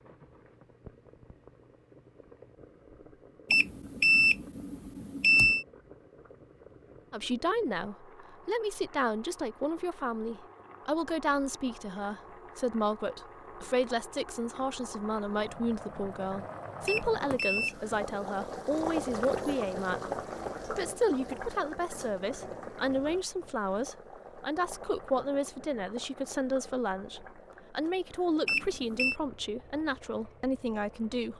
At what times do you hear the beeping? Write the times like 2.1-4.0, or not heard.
3.5-5.7, 16.9-18.5, 28.4-29.1.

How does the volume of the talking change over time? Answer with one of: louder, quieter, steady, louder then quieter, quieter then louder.
steady.